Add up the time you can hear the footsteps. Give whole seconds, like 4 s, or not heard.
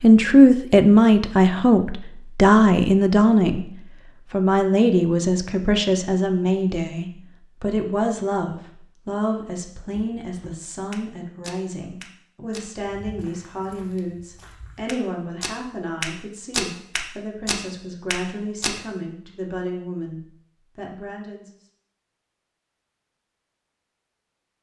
9 s.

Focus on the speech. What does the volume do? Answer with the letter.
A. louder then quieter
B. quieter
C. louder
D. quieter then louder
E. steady
B.